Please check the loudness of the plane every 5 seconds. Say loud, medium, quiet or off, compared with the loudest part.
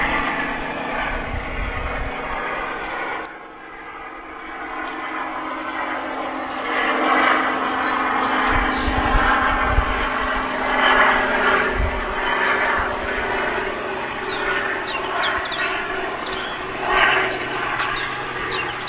medium, loud, loud, loud.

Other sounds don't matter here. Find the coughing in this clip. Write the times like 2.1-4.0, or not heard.
not heard.